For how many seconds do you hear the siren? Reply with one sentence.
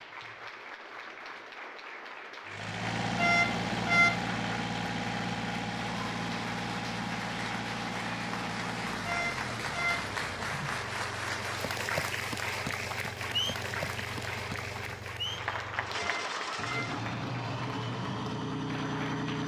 The siren can't be heard in this clip.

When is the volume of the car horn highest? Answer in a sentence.
The loudest moment of the car horn is at 4 seconds.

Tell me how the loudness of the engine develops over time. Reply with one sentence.
The volume of the engine goes down, then up.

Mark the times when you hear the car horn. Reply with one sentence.
The car horn can be heard from 3.1 to 4.2 s, from 9.0 to 10.1 s and from 15.9 to 16.9 s.